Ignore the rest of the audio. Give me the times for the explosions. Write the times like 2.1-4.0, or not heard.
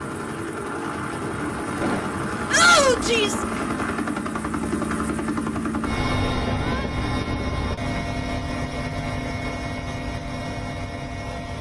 1.8-2.2.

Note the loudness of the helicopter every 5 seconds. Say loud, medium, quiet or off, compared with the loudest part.
loud, loud, medium.